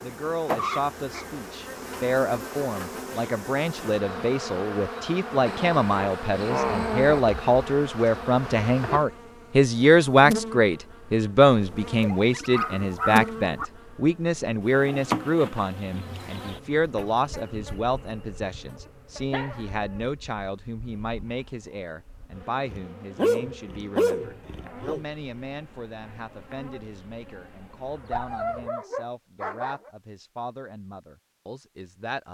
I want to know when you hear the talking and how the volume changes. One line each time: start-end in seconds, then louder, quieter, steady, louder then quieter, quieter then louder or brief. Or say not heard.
0.0-32.2 louder then quieter.